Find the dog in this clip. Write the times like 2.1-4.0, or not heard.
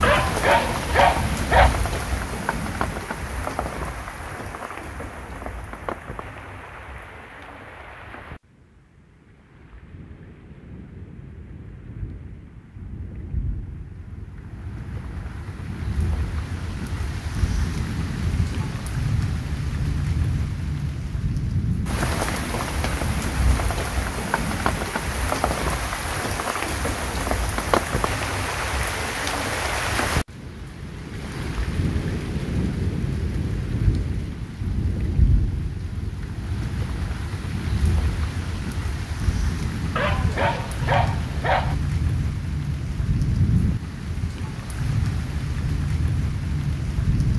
0.0-1.8, 40.0-41.8.